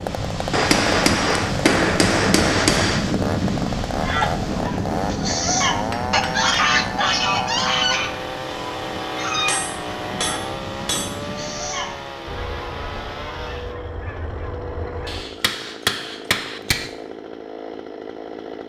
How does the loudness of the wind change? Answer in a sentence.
The volume of the wind goes down.